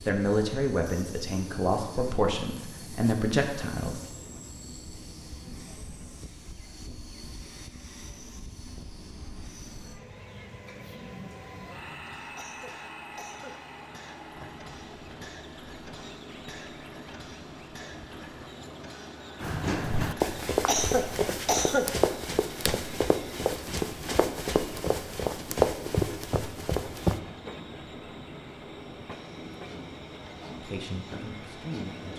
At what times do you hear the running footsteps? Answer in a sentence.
The running footsteps can be heard from 19.4 to 27.2 s.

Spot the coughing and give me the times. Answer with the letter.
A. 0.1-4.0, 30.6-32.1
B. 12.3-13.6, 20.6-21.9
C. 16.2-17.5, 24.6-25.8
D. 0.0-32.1
B.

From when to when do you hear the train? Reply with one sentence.
The train can be heard from 0.0 to 32.1 s.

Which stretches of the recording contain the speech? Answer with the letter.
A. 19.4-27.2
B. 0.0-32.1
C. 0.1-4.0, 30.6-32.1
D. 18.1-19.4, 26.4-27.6
C.